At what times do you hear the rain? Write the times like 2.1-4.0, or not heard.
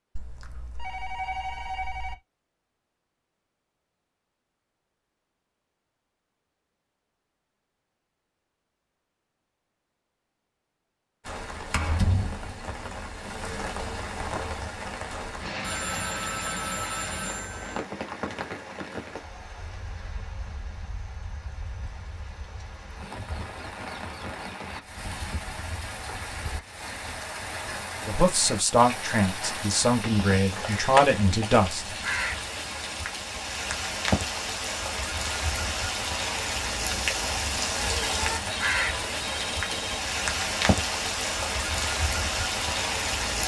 11.2-43.4.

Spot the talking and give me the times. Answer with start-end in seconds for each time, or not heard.
28.1-31.9.